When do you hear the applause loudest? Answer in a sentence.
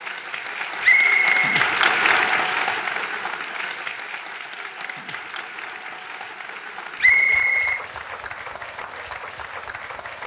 The loudest moment of the applause is at 2 seconds.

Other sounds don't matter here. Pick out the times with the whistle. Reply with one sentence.
You can hear the whistle from 0.8 to 1.4 s and from 7.0 to 7.8 s.